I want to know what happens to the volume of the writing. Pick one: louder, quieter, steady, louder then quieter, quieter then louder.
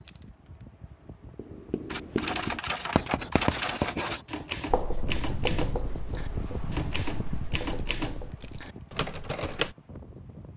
quieter.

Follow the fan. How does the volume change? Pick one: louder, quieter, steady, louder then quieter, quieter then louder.
louder then quieter.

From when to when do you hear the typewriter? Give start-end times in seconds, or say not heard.
1.9-9.8.